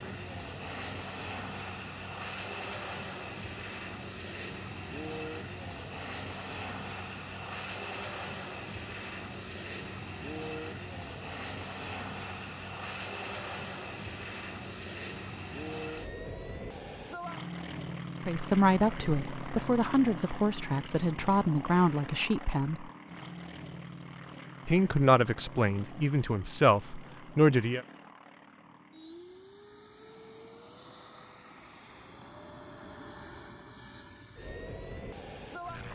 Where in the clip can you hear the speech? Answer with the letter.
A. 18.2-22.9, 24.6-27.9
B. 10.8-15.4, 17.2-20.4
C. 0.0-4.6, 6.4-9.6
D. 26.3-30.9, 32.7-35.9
A.